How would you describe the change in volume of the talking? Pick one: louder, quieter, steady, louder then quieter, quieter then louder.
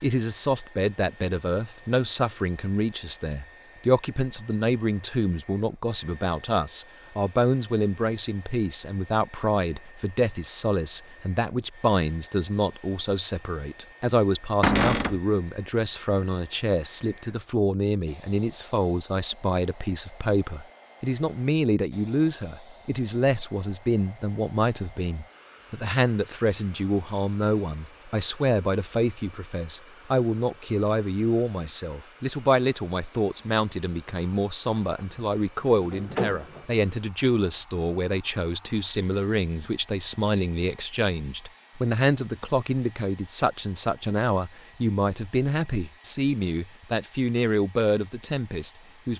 steady.